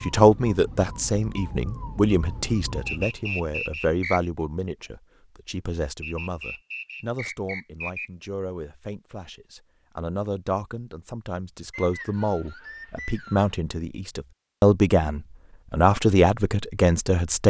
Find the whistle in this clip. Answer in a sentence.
You can hear the whistle from 2.9 to 4.2 s, from 6.0 to 8.1 s and from 11.7 to 13.6 s.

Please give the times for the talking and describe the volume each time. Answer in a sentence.
You can hear the talking from 0.0 to 17.4 s, getting quieter then louder.